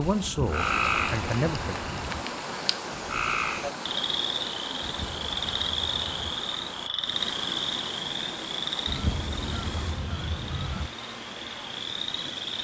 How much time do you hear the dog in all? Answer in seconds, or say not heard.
not heard.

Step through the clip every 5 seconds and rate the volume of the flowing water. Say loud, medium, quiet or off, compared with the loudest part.
loud, loud, medium.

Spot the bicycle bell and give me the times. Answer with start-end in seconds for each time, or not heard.
not heard.